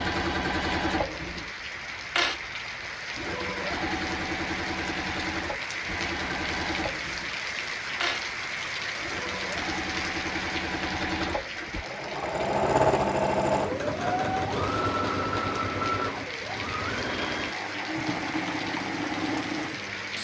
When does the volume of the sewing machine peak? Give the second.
13 s.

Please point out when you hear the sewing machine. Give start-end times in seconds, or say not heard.
0.0-20.1.